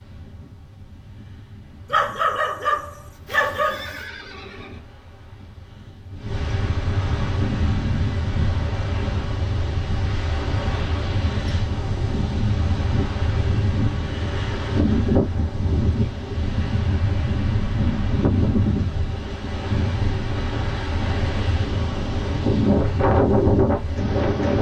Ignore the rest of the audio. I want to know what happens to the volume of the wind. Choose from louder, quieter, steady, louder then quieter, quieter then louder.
louder.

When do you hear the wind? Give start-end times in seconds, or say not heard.
0.0-24.5.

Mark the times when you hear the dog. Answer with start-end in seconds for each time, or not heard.
1.9-4.0.